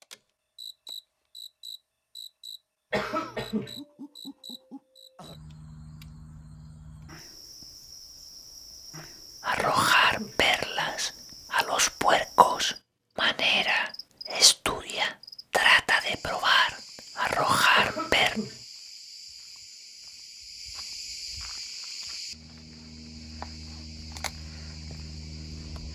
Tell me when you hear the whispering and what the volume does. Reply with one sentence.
The whispering can be heard from 9.4 to 18.4 s, at a steady volume.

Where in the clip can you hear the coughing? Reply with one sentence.
You can hear the coughing from 2.9 to 3.8 s, from 9.6 to 10.4 s and from 17.8 to 18.6 s.